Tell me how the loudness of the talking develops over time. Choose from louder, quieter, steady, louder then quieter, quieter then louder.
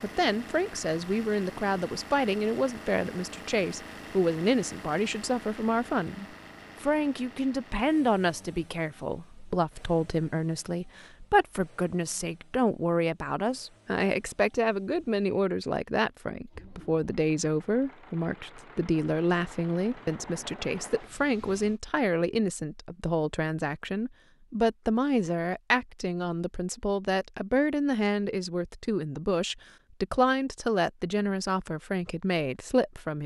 steady.